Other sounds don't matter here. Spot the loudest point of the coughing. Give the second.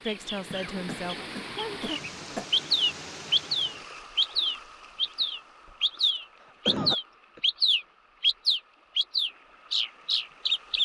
7 s.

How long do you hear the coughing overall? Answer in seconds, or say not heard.
3 s.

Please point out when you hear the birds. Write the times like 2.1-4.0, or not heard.
0.1-10.8.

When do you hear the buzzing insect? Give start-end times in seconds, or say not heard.
not heard.